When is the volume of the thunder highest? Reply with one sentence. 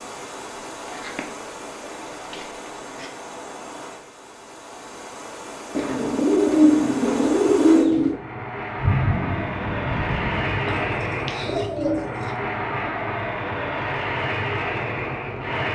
The volume of the thunder peaks at 9 seconds.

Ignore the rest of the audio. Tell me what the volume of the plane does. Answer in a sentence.
The loudness of the plane goes up.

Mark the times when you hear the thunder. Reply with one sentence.
The thunder can be heard from 8.8 to 11.1 s.